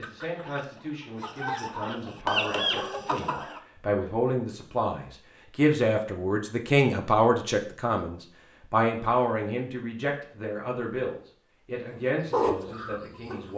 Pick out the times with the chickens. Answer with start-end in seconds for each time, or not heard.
0.0-3.6, 11.9-13.5.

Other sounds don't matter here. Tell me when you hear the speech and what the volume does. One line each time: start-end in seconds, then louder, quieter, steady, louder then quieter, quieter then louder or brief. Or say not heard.
0.0-13.5 louder then quieter.